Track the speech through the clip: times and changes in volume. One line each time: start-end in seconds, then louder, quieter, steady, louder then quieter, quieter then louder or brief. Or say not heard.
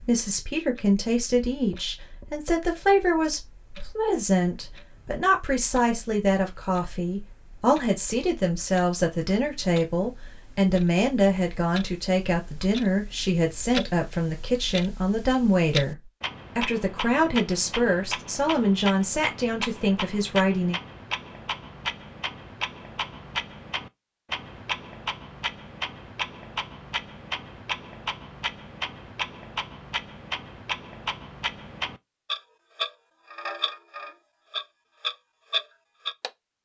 0.0-20.8 steady.